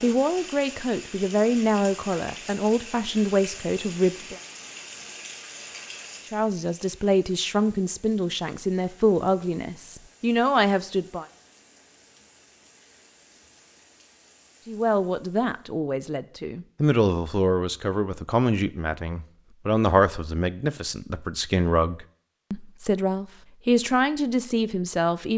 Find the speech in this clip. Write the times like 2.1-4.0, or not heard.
0.0-4.4, 6.3-11.2, 14.7-25.3.